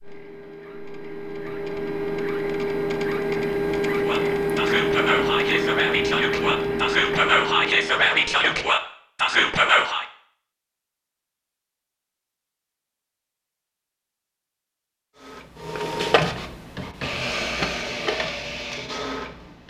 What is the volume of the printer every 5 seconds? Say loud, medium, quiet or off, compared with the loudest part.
loud, loud, off, loud.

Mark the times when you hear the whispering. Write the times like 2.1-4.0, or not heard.
4.0-10.1.